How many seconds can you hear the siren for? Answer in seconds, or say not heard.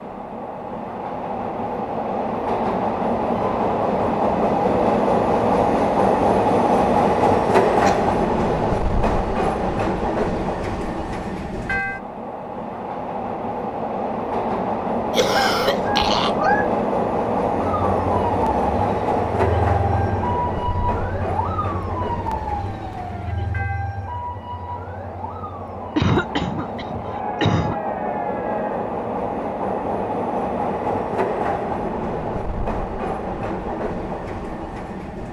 11 s.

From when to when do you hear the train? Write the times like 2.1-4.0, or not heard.
0.0-35.2.